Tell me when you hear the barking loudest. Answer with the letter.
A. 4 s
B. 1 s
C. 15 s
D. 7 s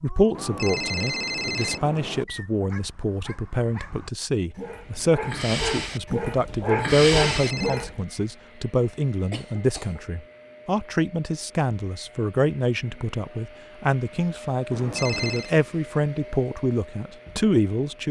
D.